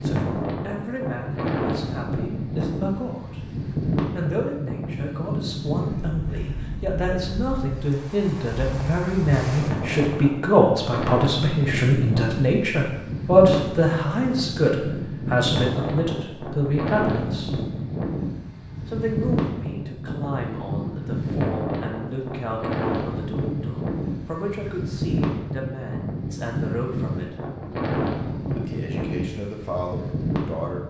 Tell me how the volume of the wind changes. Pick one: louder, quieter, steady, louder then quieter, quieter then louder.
steady.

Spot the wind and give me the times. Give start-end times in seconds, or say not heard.
0.0-30.8.